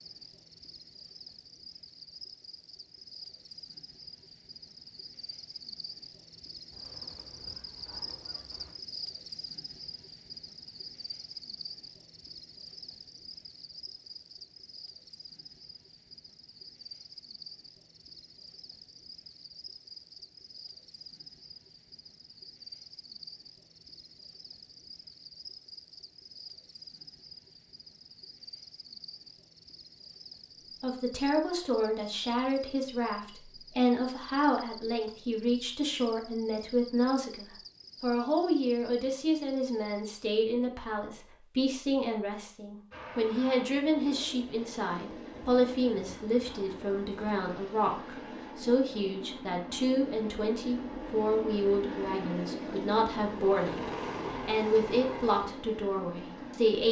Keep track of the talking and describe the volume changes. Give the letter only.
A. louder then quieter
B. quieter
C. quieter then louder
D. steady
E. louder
D.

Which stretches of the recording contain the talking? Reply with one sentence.
The talking can be heard from 30.8 to 56.8 s.